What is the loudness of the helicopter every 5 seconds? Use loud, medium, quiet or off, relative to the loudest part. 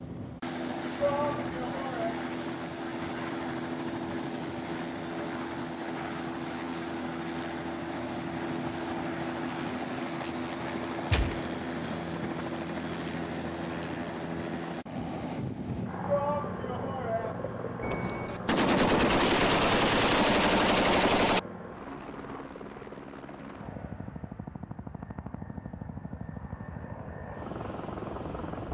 loud, loud, loud, loud, medium, medium.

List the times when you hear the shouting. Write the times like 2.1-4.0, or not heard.
0.9-2.2, 16.1-17.4.